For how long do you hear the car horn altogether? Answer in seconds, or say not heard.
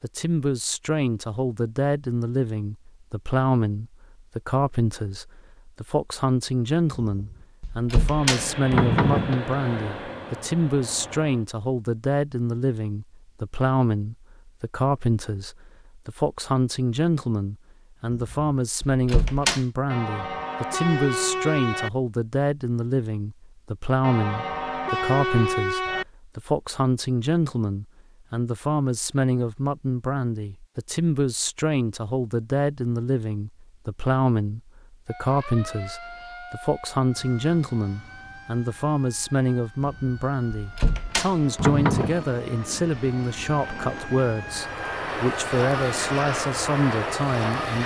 4 s.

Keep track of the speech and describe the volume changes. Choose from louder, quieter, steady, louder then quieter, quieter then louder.
steady.